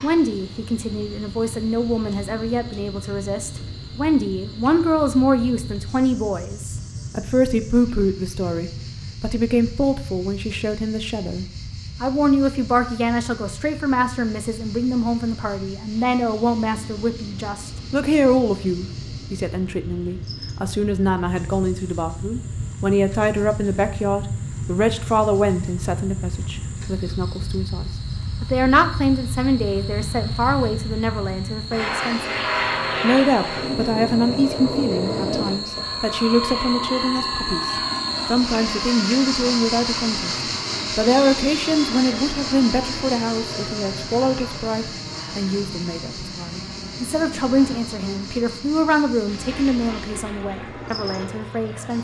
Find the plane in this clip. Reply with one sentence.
You can hear the plane from 0.0 to 51.9 s.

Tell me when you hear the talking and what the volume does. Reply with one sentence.
You can hear the talking from 0.0 to 32.4 s, at a steady volume; and from 33.0 to 51.9 s, at a steady volume.